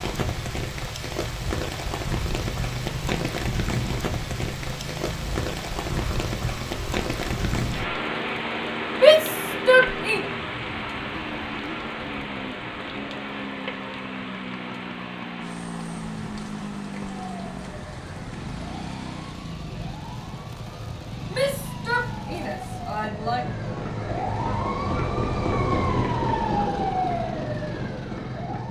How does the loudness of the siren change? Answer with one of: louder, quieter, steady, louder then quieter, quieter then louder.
louder.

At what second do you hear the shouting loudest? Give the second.
9 s.